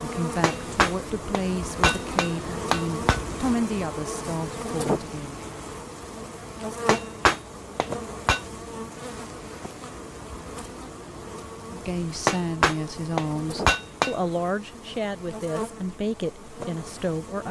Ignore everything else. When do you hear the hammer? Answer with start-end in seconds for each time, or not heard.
0.4-3.2, 6.8-8.4, 12.2-14.2.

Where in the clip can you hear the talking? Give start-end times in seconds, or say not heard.
0.0-5.3, 11.7-17.4.